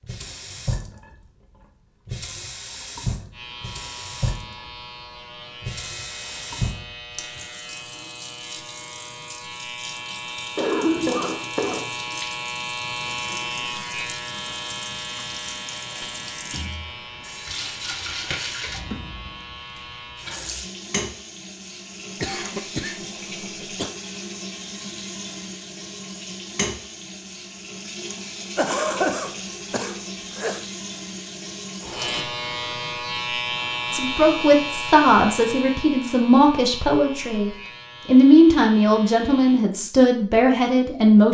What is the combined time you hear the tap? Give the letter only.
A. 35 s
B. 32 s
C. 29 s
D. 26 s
B.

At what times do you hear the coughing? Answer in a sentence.
You can hear the coughing from 10.6 to 11.9 s, from 22.2 to 23.9 s and from 28.6 to 30.6 s.